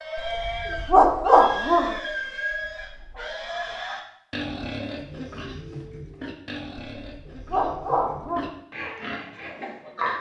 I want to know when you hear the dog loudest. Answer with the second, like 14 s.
1 s.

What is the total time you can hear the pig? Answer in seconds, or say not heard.
10 s.